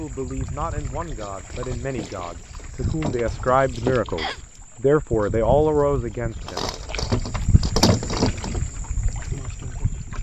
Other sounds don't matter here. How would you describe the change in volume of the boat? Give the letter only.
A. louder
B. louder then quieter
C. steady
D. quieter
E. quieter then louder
A.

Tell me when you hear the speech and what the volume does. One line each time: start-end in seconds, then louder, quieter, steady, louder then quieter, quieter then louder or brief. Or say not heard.
0.0-6.7 louder.